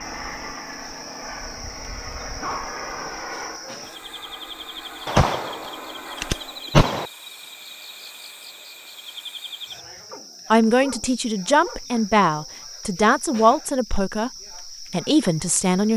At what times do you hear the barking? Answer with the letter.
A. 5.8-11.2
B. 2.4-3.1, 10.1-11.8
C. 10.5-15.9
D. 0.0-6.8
B.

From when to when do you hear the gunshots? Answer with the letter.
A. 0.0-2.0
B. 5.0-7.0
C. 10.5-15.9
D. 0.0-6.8
B.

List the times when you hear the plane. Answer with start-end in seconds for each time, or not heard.
0.0-6.8.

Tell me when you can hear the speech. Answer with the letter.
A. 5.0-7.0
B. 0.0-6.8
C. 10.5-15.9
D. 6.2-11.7
C.